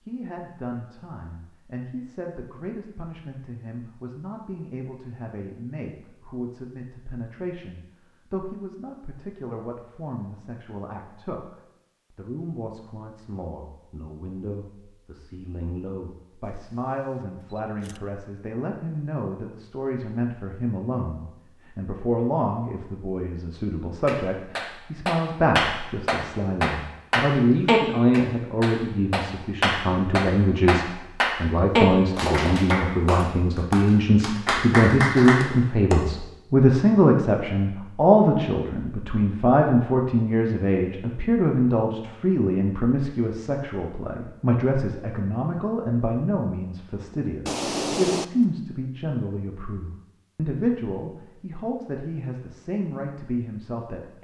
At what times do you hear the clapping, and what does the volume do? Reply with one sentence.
You can hear the clapping from 24.1 to 36.0 s, at a steady volume.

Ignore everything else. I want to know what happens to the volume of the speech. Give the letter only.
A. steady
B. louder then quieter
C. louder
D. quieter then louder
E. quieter
B.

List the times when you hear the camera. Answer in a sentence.
You can hear the camera from 16.6 to 18.0 s and from 47.5 to 48.2 s.